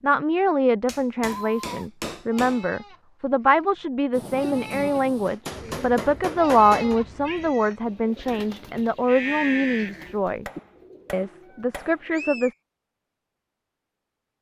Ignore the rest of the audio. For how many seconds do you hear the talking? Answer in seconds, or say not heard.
12 s.